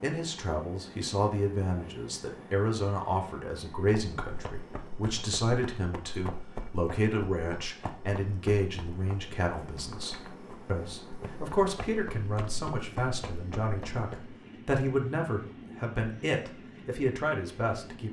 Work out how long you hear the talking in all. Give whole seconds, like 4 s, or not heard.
18 s.